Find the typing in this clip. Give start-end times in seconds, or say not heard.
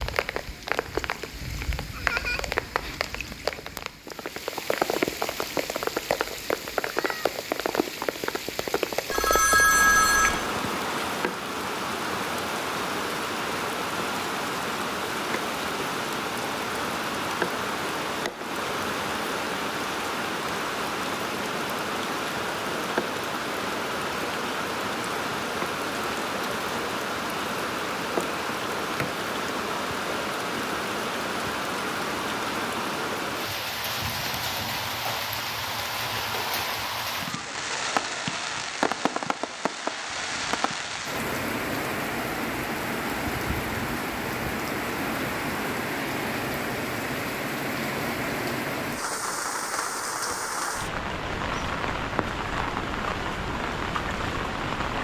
not heard.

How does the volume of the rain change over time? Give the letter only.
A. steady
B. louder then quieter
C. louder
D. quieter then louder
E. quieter
A.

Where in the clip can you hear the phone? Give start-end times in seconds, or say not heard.
9.1-10.4.